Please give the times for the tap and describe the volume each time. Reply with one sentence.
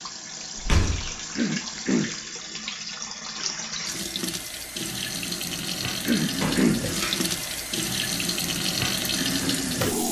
You can hear the tap from 0.0 to 10.0 s, getting louder.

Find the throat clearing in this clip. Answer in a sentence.
You can hear the throat clearing from 1.4 to 2.1 s and from 6.0 to 6.9 s.